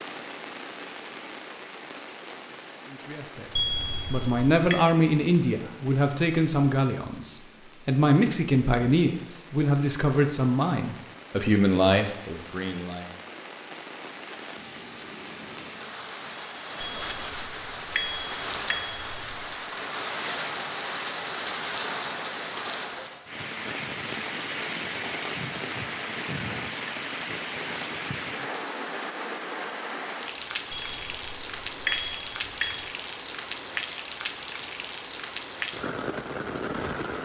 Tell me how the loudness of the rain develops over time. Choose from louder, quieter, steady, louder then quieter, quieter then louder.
louder.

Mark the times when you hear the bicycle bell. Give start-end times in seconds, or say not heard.
3.5-4.8, 16.8-19.5, 30.7-32.9.